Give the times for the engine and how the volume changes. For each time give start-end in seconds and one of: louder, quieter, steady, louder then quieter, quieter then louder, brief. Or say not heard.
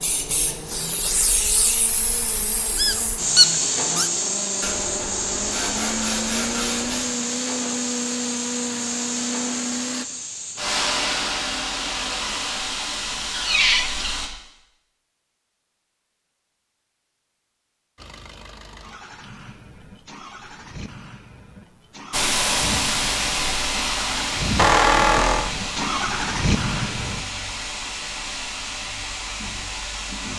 0.0-10.1 louder
17.9-27.2 louder.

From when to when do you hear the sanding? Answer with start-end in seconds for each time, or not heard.
4.6-7.1.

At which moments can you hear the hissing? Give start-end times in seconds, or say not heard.
0.0-14.3, 22.1-30.3.